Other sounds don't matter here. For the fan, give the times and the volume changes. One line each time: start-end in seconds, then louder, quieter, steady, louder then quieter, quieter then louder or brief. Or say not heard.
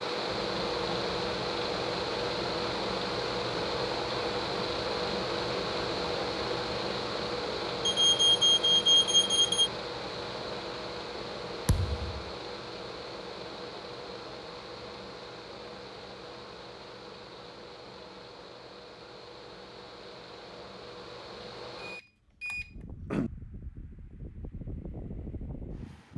0.0-26.1 quieter.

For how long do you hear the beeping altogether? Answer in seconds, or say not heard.
3 s.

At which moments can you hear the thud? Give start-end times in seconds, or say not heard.
11.7-12.3.